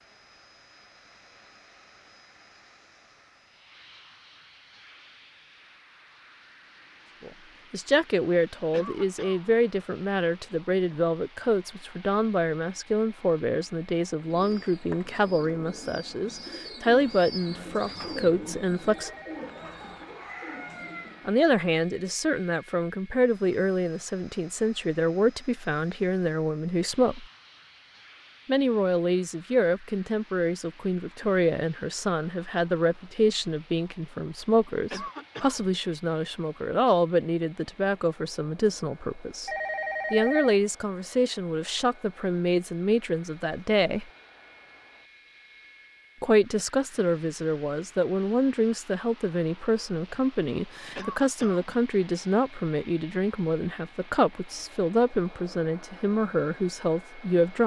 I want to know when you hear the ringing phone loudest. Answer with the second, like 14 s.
40 s.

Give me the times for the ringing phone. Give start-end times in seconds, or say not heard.
18.9-19.4, 39.5-40.6.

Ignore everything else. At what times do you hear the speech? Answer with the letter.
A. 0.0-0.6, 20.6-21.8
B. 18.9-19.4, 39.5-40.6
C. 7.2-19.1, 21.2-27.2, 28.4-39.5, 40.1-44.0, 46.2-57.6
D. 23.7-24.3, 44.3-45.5
C.